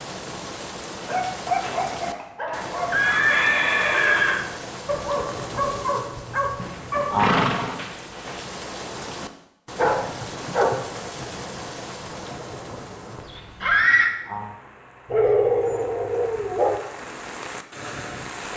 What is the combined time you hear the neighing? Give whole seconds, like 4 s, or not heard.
4 s.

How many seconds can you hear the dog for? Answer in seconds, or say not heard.
8 s.